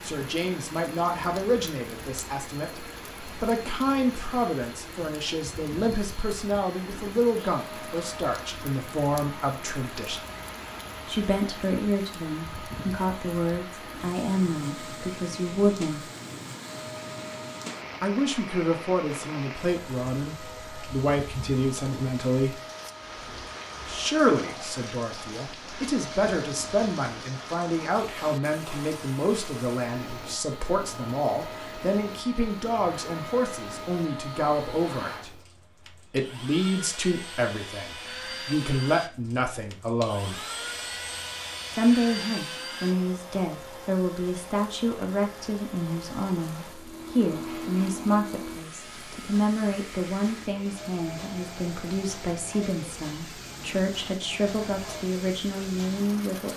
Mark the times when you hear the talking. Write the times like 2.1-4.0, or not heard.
0.0-10.2, 11.1-16.1, 18.0-22.6, 23.9-35.4, 36.1-40.4, 41.7-56.5.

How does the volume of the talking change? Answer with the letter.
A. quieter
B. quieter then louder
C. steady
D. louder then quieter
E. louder
C.